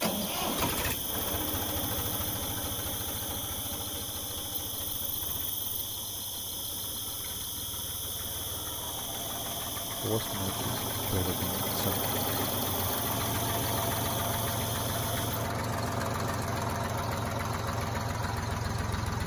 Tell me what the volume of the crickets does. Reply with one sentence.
The loudness of the crickets stays about the same.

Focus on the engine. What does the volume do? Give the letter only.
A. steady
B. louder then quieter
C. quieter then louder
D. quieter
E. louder
C.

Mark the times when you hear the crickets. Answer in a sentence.
You can hear the crickets from 0.0 to 15.6 s.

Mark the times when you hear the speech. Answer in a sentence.
The speech can be heard from 10.0 to 11.9 s.